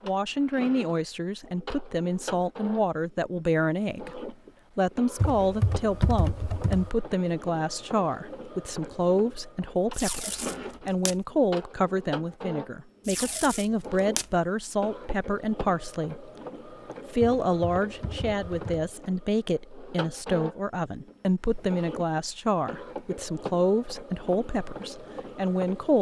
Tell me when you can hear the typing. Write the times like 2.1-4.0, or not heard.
5.2-6.9, 17.4-18.9.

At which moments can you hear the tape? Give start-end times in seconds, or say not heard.
9.9-11.2, 13.1-14.3.